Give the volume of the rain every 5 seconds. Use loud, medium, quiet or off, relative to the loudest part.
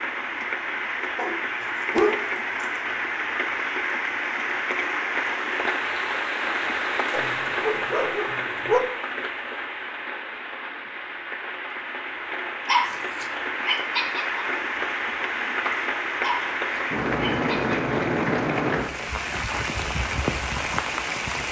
loud, loud, medium, loud, loud.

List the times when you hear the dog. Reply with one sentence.
You can hear the dog from 1.1 to 2.8 s, from 7.1 to 8.8 s, from 12.7 to 14.4 s and from 16.2 to 17.8 s.